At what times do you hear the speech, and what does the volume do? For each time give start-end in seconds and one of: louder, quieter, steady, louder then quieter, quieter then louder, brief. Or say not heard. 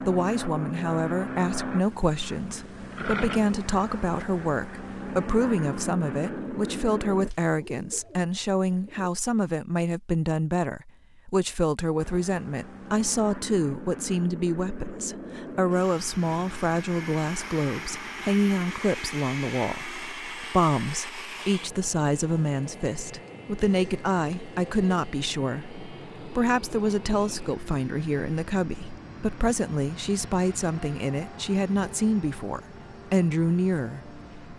0.0-34.5 steady.